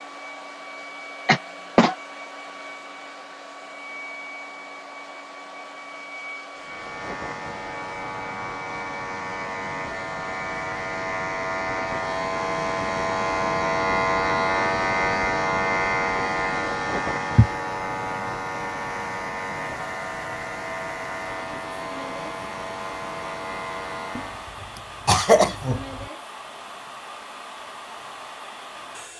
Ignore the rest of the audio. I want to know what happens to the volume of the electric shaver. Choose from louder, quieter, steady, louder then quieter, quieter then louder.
louder then quieter.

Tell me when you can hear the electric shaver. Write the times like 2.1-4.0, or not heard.
6.5-24.6.